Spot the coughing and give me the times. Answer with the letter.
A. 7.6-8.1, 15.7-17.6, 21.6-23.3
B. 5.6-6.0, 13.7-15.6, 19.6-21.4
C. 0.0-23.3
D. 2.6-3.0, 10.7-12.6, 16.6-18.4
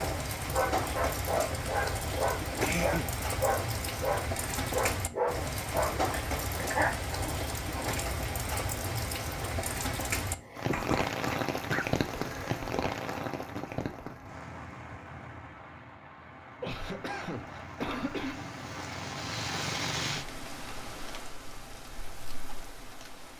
D.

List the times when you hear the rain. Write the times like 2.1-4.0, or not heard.
0.0-23.3.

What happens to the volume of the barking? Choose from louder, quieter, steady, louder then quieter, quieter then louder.
steady.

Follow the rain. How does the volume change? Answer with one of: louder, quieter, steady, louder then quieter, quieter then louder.
quieter then louder.